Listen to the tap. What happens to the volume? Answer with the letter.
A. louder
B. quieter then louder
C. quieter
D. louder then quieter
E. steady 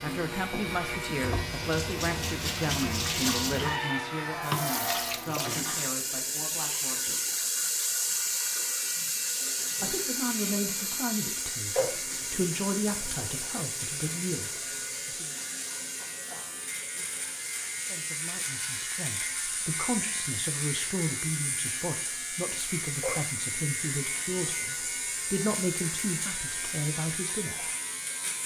C.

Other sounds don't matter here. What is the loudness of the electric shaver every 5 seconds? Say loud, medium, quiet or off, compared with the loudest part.
loud, medium, medium, loud, loud, loud.